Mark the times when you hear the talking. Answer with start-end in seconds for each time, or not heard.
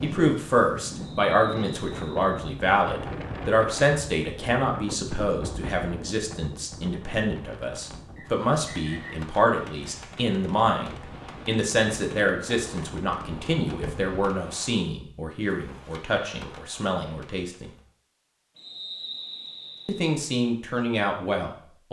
0.0-17.7, 19.9-21.8.